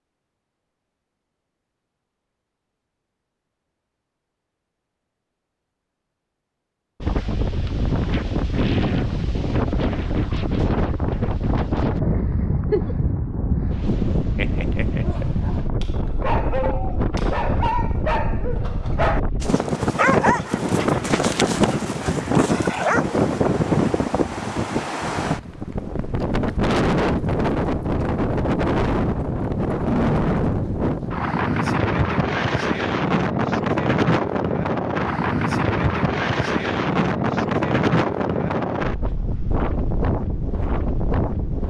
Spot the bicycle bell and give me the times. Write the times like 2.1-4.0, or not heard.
not heard.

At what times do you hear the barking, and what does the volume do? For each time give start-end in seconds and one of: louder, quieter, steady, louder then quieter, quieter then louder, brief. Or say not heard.
14.3-23.1 louder then quieter.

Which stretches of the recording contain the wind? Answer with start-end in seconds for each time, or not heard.
7.0-41.6.